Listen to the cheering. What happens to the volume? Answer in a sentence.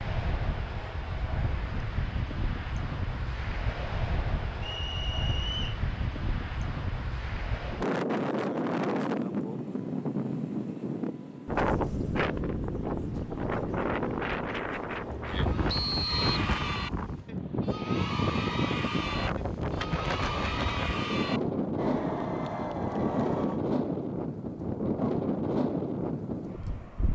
The loudness of the cheering stays about the same.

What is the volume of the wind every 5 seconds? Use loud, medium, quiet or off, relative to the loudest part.
medium, loud, loud, loud, loud, loud.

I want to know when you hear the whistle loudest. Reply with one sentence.
The loudest moment of the whistle is at 16 seconds.